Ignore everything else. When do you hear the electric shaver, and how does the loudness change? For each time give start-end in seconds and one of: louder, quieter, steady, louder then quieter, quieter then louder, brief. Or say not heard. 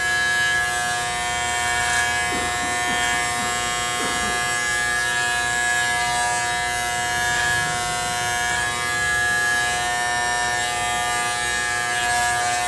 0.0-12.6 steady.